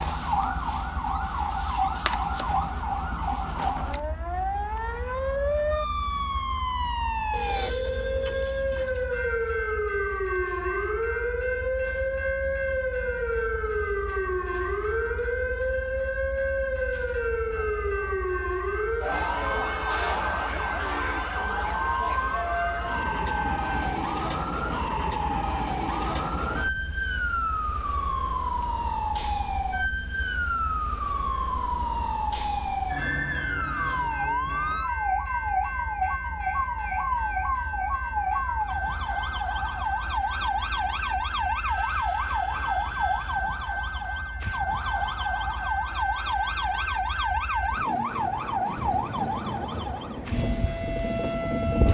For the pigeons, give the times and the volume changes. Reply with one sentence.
The pigeons can't be heard in this clip.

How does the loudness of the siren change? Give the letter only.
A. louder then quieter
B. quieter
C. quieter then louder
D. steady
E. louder
D.